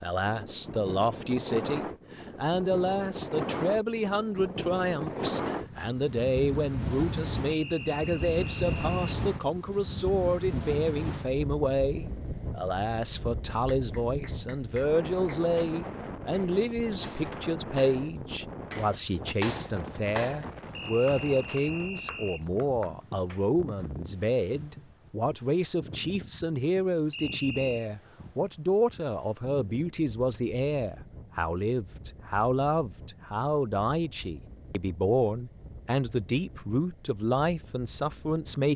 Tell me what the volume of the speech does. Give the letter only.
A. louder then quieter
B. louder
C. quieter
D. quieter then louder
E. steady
E.